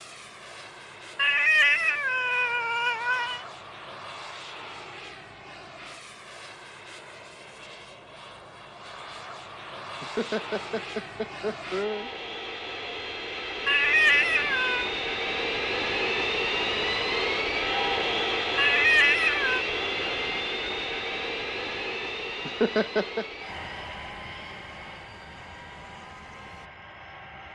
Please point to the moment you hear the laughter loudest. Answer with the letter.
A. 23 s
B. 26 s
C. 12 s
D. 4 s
A.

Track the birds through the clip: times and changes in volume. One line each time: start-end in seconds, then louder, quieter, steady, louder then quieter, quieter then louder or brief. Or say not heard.
not heard.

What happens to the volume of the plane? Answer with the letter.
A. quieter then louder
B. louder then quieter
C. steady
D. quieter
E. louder
B.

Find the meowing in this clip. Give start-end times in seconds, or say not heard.
1.1-3.4, 13.7-14.9, 18.6-19.6.